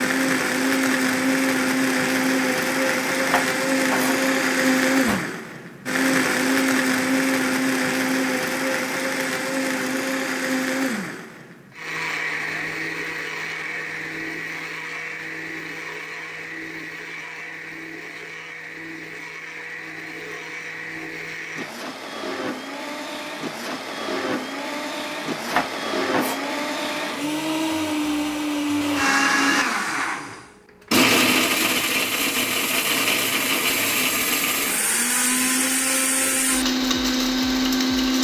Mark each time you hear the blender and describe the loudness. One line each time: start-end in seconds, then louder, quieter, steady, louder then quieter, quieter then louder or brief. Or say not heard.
0.0-38.2 quieter then louder.